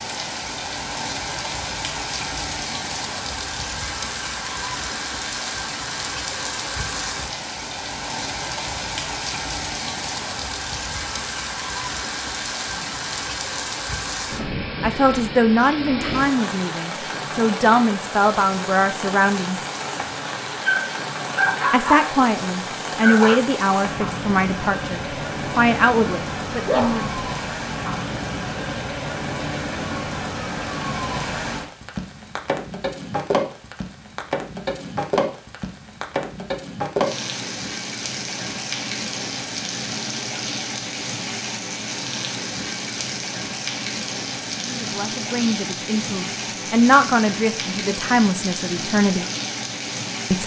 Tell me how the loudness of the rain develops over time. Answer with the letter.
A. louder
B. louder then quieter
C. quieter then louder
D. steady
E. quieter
D.